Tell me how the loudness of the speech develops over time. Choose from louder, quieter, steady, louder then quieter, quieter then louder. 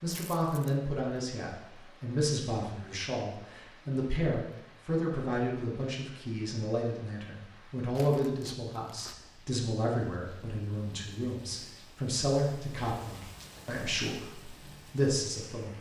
steady.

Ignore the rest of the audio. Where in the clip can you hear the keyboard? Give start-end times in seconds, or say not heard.
not heard.